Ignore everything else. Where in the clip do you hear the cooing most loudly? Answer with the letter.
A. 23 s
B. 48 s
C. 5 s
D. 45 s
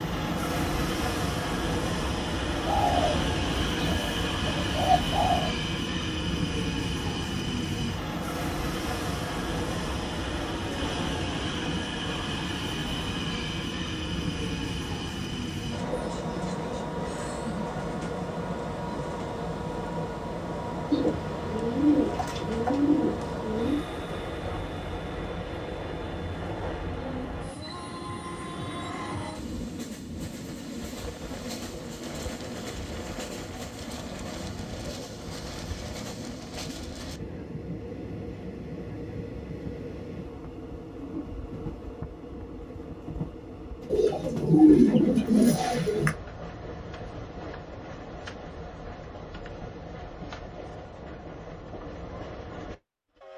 D.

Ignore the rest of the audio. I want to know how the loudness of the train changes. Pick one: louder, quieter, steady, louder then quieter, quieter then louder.
quieter.